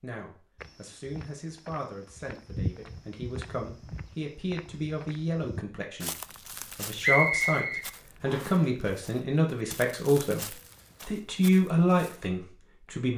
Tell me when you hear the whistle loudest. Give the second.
7 s.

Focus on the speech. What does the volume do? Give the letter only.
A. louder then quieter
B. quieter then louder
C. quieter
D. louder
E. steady
D.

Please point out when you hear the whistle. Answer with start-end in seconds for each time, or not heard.
7.0-8.6.